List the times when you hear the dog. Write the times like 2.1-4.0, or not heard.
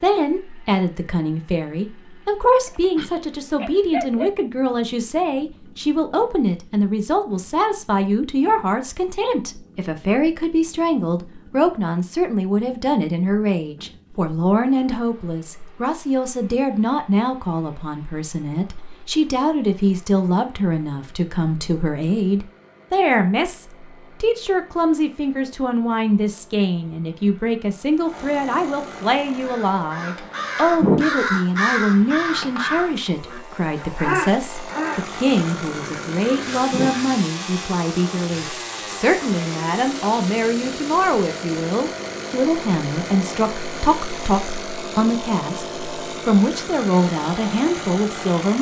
2.6-4.3.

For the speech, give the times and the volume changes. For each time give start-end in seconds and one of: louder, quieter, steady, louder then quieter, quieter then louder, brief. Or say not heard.
0.0-48.5 steady.